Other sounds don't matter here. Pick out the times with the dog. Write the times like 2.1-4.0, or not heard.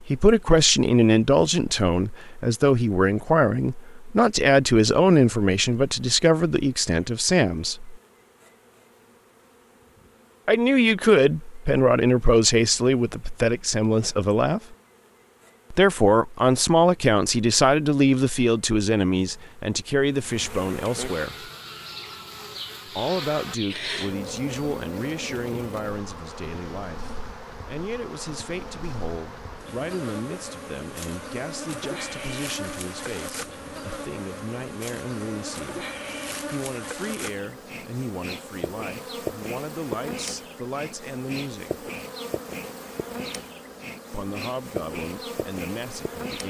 not heard.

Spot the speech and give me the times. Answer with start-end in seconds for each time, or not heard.
0.0-8.0, 10.4-14.8, 15.7-21.5, 22.9-35.9, 36.5-41.9, 44.1-46.4.